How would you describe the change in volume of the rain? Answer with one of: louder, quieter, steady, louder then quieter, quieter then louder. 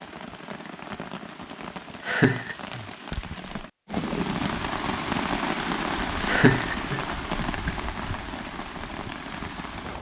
louder then quieter.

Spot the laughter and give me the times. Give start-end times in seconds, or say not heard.
2.0-2.5, 6.2-7.8.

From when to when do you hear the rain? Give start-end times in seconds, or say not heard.
0.0-9.9.